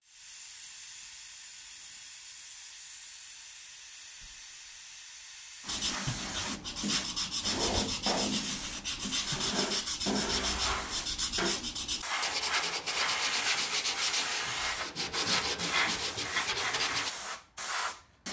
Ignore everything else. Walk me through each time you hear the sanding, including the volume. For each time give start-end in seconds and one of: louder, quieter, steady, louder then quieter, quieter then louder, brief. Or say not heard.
5.7-17.1 steady.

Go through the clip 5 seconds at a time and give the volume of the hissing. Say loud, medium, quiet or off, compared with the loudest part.
quiet, loud, loud, loud.